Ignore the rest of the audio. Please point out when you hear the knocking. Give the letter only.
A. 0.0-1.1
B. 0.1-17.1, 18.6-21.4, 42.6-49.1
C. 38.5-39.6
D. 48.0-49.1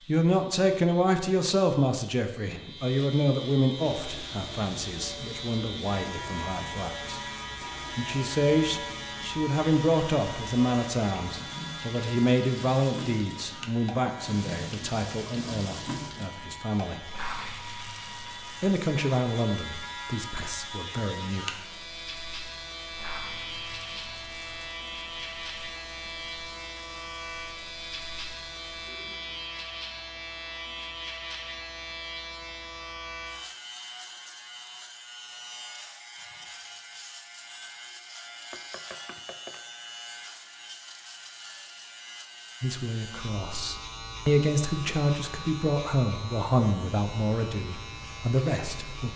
C.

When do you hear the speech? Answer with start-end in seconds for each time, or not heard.
0.1-17.1, 18.6-21.4, 42.6-49.1.